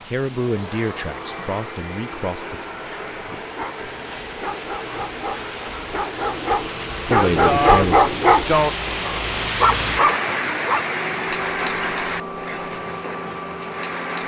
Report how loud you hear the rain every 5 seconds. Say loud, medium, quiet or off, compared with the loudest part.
quiet, loud, loud.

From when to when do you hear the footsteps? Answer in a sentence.
You can't hear the footsteps here.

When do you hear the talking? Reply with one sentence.
The talking can be heard from 0.1 to 2.6 s and from 7.1 to 8.1 s.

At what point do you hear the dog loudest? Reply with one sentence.
The volume of the dog peaks at 8 seconds.